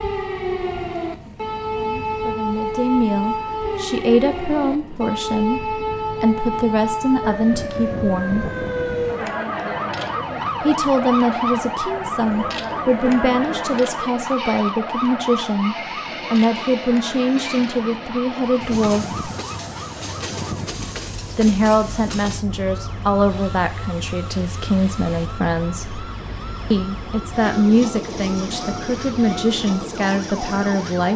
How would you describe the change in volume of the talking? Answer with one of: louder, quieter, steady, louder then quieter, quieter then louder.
steady.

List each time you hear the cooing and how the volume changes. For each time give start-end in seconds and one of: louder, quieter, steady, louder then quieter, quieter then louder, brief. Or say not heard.
not heard.